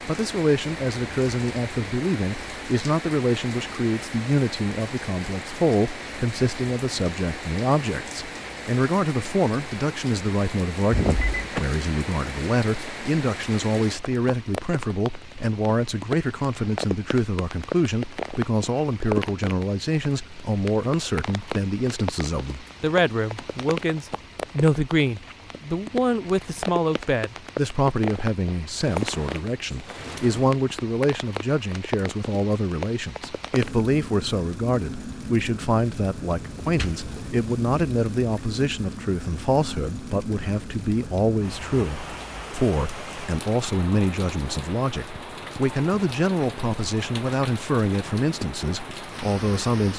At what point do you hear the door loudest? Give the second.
11 s.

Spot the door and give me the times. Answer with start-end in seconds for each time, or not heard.
10.9-11.6, 28.9-30.6, 36.6-37.1.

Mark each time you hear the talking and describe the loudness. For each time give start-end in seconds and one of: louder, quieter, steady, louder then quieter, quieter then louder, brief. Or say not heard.
0.1-49.9 steady.